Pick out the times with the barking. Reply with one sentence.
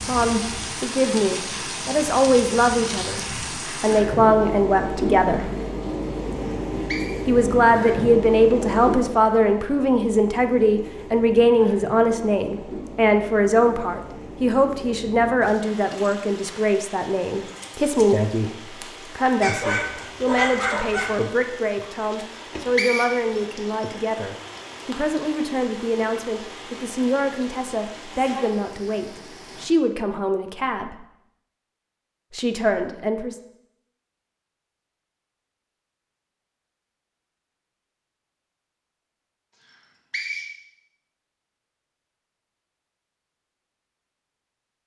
The barking can be heard from 19.4 to 21.2 s.